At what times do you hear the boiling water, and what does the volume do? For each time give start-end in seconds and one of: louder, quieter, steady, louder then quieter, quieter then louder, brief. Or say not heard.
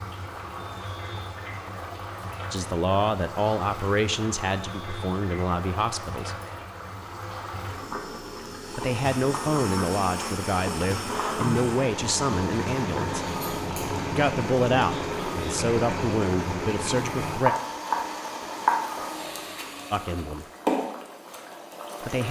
0.0-22.2 louder.